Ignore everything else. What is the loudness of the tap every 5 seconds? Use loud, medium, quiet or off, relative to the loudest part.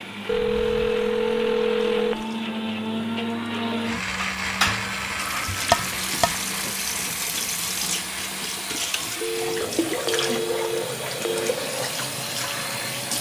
quiet, loud, loud.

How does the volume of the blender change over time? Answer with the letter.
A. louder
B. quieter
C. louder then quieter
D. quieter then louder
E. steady
B.